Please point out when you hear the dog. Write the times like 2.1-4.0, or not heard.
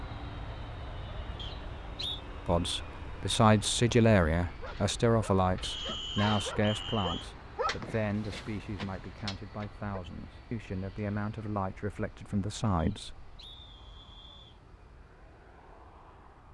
4.5-10.0.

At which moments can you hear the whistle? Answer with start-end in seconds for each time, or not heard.
1.4-2.2, 5.6-7.2, 12.8-14.6.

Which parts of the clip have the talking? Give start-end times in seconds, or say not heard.
2.5-13.3.